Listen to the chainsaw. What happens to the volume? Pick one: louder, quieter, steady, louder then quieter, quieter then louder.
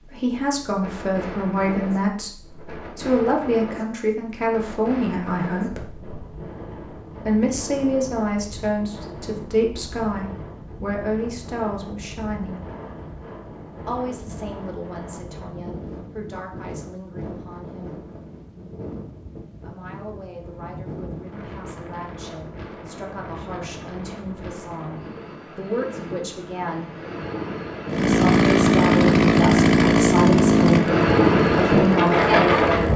quieter.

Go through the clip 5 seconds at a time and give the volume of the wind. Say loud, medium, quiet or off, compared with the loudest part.
quiet, quiet, quiet, quiet, quiet, quiet, loud.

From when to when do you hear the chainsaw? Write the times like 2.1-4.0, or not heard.
27.9-32.9.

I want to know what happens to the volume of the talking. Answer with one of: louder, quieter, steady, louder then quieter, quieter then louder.
quieter then louder.